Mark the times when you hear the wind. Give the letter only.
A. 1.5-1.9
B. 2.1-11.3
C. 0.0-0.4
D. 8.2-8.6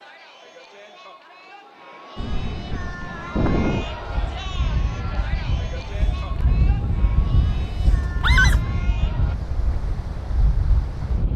B.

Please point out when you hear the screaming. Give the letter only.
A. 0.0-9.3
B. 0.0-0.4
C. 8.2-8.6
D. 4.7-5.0
C.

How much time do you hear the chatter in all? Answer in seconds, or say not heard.
9 s.